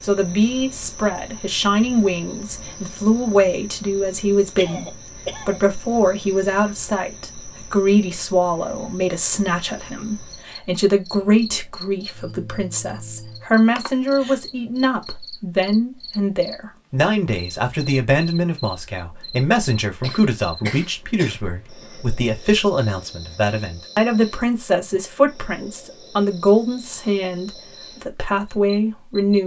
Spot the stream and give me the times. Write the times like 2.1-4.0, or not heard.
not heard.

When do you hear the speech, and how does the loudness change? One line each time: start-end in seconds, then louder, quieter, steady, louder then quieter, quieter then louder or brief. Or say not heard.
0.0-29.4 steady.